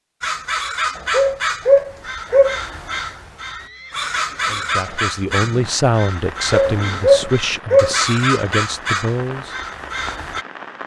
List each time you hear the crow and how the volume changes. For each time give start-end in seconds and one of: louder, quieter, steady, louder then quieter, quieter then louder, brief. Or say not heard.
0.2-10.4 steady.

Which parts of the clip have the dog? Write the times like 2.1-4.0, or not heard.
1.1-2.5, 6.5-8.0.